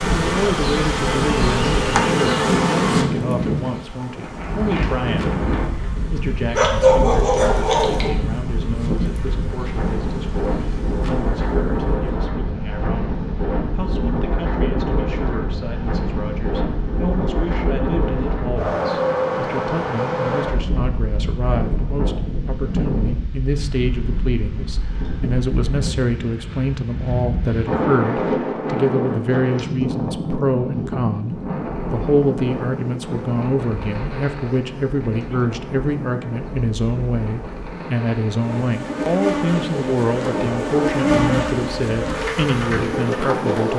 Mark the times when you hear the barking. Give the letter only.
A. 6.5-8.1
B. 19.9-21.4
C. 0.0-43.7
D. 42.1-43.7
A.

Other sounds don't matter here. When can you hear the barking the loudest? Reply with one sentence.
The volume of the barking peaks at 7 seconds.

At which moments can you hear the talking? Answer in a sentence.
You can hear the talking from 0.0 to 43.7 s.